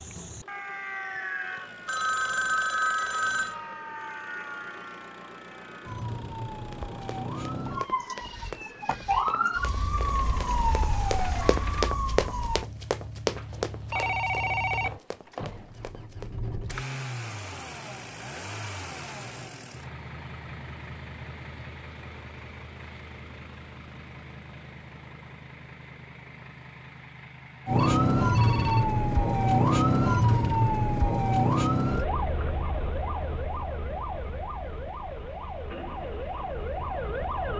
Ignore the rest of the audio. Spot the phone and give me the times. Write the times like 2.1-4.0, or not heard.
1.9-3.5, 13.3-15.6, 27.8-28.9.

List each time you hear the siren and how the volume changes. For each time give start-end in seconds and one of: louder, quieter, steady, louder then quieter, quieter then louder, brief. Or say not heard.
0.0-12.7 louder
27.6-37.5 quieter.